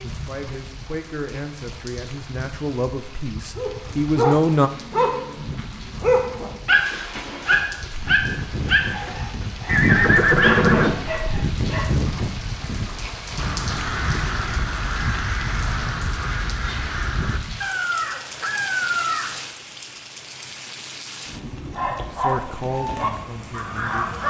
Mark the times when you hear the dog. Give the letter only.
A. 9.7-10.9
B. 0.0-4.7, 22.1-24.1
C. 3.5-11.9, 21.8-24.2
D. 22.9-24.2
C.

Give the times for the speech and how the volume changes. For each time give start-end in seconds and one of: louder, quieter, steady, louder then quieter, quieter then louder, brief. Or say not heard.
0.0-4.7 louder
22.1-24.1 brief.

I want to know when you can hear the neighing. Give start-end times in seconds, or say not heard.
9.7-10.9.